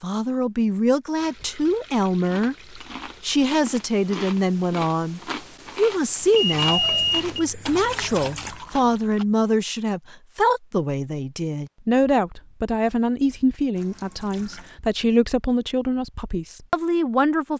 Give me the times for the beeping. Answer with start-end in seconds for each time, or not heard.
6.3-7.5.